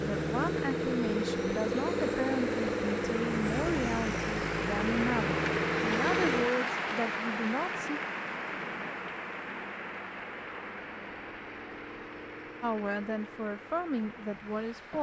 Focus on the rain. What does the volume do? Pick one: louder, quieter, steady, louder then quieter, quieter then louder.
louder then quieter.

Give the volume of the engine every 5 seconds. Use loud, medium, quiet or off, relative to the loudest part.
loud, loud, quiet.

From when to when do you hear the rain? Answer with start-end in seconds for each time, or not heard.
0.0-14.9.